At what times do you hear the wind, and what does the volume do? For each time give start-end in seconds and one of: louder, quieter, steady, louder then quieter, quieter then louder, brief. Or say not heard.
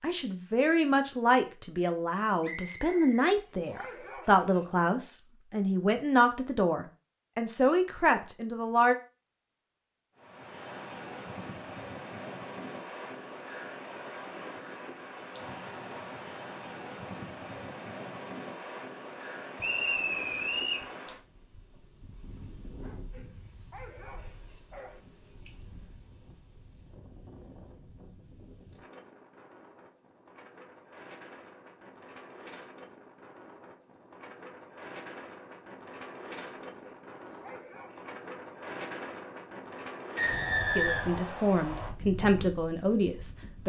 10.2-43.6 quieter then louder.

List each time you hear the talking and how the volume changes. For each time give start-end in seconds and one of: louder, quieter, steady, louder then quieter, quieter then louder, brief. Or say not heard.
0.0-8.9 steady
40.8-43.6 brief.